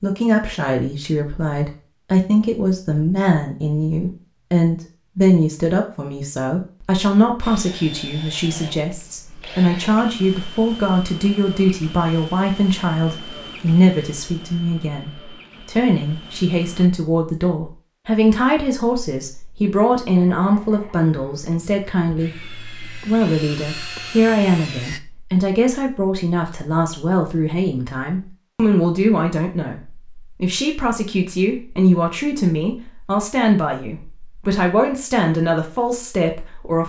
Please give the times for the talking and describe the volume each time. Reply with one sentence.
You can hear the talking from 0.0 to 36.8 s, at a steady volume.